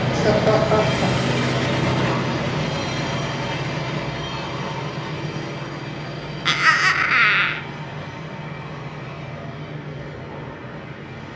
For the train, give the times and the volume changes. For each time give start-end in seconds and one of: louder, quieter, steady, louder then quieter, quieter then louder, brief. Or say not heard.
0.0-11.3 quieter.